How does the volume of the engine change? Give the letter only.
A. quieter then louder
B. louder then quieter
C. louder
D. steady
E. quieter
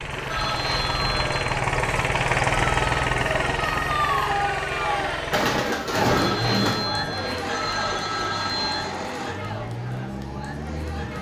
E.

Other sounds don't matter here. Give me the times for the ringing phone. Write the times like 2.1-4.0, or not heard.
0.3-1.6, 6.0-8.9.